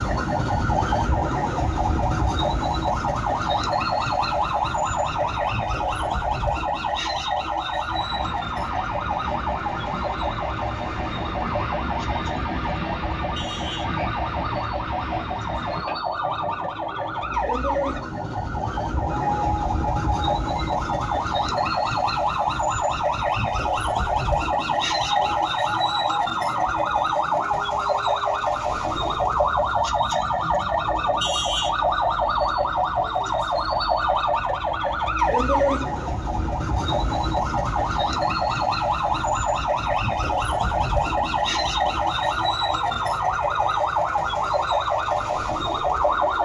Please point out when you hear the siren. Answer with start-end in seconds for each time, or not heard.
0.0-46.4.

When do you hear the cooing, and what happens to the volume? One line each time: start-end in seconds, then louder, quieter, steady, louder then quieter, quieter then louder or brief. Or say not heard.
not heard.